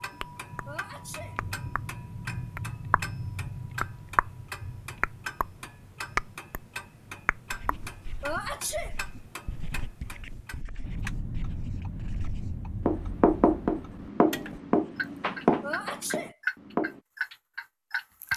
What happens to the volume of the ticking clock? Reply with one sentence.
The loudness of the ticking clock goes down, then up.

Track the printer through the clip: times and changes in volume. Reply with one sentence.
The printer can't be heard in this clip.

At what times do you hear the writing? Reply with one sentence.
You can hear the writing from 7.5 to 17.0 s.